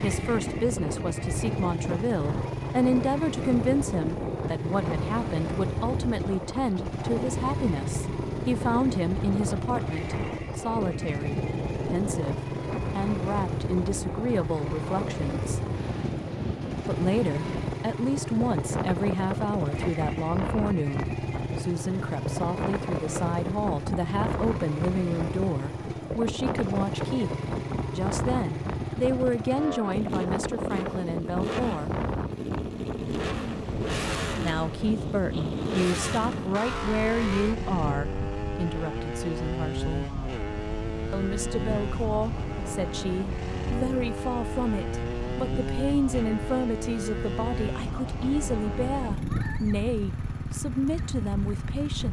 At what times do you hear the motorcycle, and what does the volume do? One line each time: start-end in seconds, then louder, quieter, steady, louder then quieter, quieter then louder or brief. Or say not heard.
0.0-52.0 steady.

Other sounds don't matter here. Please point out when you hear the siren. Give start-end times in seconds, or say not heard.
not heard.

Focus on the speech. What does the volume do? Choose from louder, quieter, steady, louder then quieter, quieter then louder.
steady.